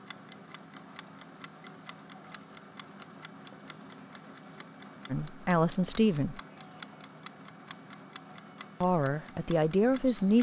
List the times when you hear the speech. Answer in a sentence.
The speech can be heard from 5.1 to 6.4 s and from 8.8 to 10.3 s.